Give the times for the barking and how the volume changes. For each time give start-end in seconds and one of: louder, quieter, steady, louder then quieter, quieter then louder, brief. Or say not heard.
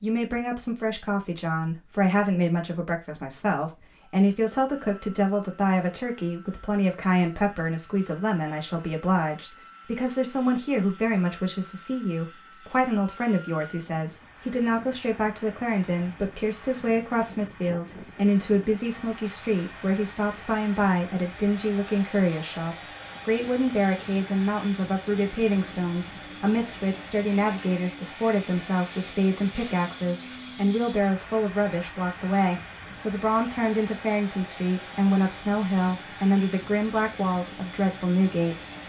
not heard.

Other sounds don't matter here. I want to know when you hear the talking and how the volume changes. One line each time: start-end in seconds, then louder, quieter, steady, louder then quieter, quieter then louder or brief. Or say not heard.
0.0-38.5 steady.